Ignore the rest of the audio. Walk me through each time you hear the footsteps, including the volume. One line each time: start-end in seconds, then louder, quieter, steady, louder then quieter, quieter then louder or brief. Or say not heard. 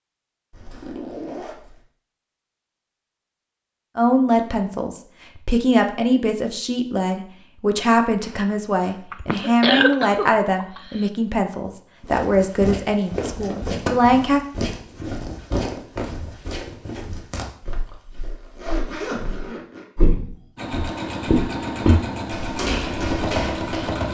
12.1-24.0 quieter then louder.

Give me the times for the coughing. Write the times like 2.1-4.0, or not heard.
9.1-11.1.